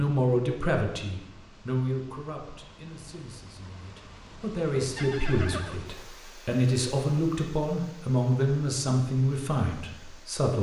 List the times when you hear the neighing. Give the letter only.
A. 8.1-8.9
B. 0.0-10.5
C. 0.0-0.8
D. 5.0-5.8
D.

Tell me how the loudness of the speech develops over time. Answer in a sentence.
The loudness of the speech goes down, then up.